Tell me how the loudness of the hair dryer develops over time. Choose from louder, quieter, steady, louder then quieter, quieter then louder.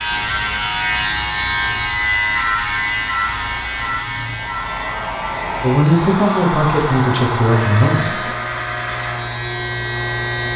louder then quieter.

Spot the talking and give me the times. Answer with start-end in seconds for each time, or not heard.
5.6-8.2.